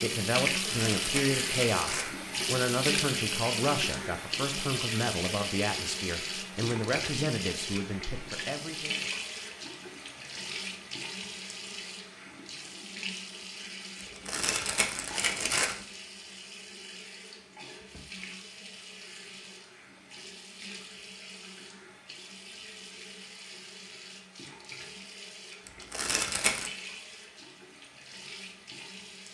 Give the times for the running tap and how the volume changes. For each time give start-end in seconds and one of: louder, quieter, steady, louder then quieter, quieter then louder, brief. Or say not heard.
0.0-29.2 quieter.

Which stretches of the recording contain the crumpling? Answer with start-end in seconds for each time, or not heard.
0.5-2.1, 14.0-15.8, 25.6-26.7.